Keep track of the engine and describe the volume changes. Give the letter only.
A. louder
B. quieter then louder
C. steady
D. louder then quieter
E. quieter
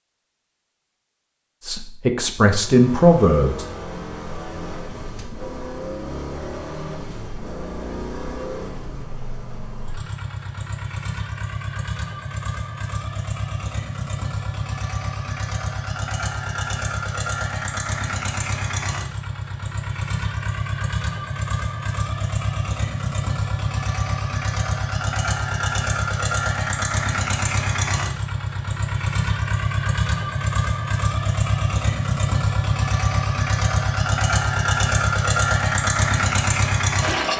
A.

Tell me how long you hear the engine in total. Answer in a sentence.
The engine can be heard for 35 seconds in total.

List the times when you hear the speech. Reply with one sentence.
The speech can be heard from 1.6 to 3.6 s.